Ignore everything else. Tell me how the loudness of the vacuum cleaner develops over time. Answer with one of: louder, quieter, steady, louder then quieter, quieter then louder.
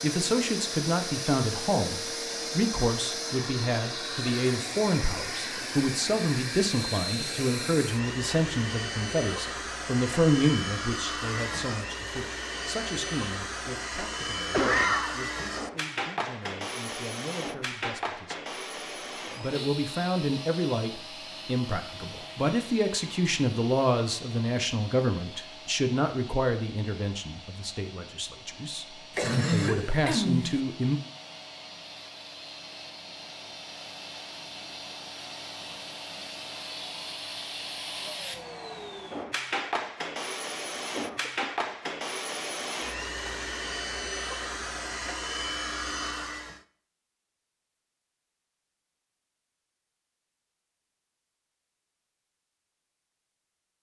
quieter then louder.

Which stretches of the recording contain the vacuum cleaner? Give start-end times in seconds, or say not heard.
0.0-46.6.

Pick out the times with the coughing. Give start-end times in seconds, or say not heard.
14.5-15.2, 29.1-30.6, 41.0-42.0.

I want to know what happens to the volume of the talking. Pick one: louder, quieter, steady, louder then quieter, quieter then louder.
quieter then louder.